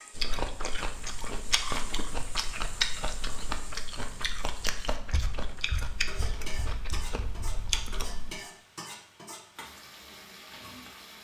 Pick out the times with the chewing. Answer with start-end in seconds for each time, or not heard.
0.1-8.3.